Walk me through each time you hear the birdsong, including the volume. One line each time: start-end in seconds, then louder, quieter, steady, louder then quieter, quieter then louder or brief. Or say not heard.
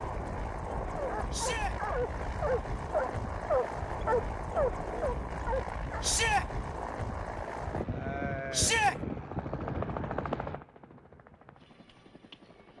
not heard.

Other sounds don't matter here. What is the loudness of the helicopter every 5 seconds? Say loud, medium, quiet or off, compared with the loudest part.
loud, loud, medium.